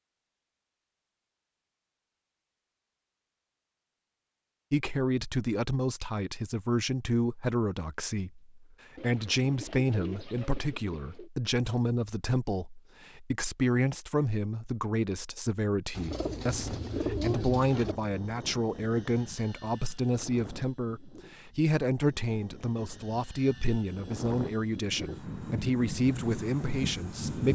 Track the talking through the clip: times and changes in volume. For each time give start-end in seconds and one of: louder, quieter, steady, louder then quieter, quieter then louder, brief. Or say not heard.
4.7-27.5 steady.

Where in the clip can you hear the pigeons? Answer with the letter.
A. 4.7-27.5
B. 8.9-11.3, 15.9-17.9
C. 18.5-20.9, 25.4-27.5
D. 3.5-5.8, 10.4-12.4
B.